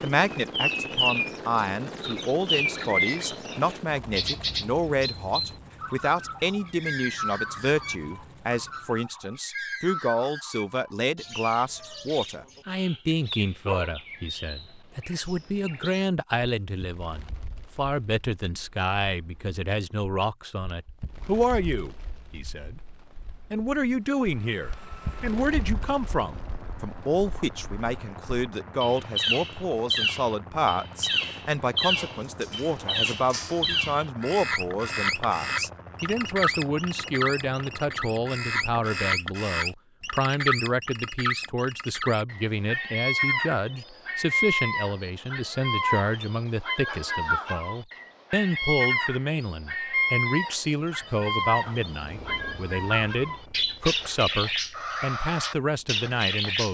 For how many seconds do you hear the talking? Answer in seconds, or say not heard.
57 s.